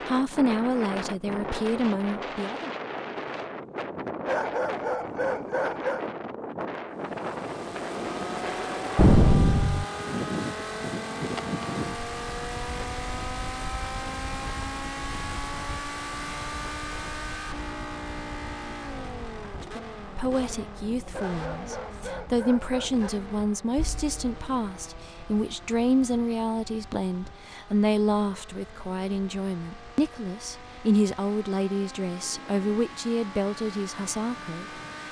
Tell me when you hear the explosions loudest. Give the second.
9 s.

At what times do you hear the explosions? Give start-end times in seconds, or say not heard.
8.9-9.8, 23.8-24.3.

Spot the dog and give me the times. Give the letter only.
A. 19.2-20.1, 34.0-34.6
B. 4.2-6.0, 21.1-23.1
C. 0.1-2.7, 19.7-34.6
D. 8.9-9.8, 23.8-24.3
B.